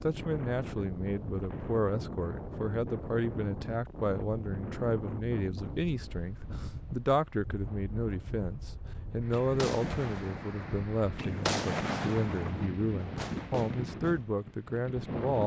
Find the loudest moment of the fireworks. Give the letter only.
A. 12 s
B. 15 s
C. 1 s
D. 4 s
A.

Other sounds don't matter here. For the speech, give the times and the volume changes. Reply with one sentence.
The speech can be heard from 0.0 to 15.4 s, at a steady volume.